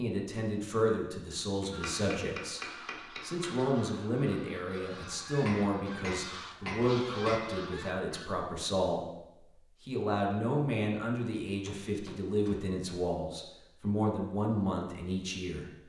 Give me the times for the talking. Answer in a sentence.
You can hear the talking from 0.0 to 9.0 s and from 9.8 to 15.8 s.